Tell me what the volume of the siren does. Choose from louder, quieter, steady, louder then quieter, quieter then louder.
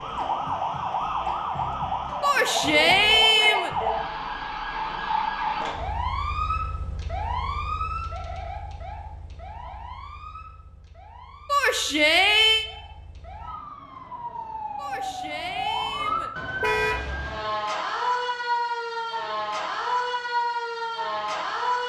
quieter then louder.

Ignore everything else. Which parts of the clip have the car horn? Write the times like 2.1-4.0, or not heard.
16.6-17.1.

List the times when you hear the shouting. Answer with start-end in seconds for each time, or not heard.
2.2-3.7, 11.4-12.7, 14.8-16.3.